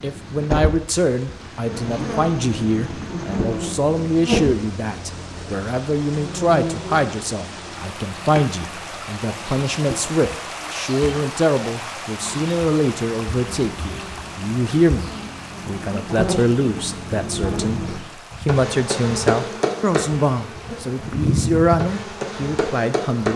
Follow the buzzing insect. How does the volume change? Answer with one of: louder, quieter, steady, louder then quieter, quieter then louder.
quieter then louder.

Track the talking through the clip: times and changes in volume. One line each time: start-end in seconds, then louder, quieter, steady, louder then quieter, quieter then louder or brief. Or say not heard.
0.0-23.3 steady.